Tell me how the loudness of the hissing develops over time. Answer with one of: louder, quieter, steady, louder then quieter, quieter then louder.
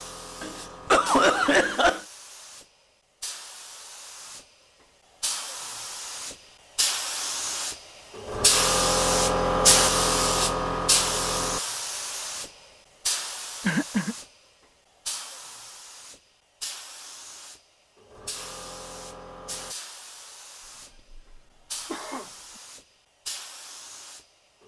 louder then quieter.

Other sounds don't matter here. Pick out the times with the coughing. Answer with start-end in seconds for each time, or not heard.
0.4-2.0, 13.7-14.2, 20.9-22.3.